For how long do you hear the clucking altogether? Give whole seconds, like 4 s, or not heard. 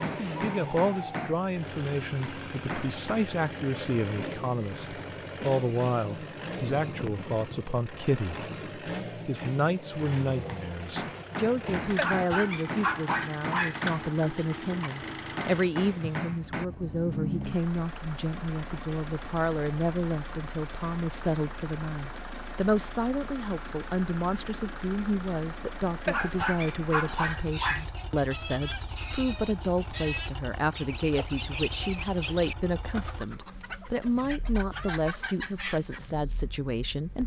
9 s.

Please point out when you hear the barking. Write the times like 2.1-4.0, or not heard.
11.9-14.9, 26.1-27.9.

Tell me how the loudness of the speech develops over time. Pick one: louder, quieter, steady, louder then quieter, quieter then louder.
steady.